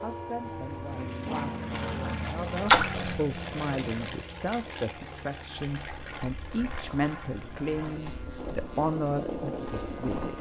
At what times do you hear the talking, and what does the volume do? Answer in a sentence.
You can hear the talking from 0.0 to 10.3 s, getting louder.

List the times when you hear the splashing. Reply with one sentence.
You can hear the splashing from 2.6 to 3.2 s.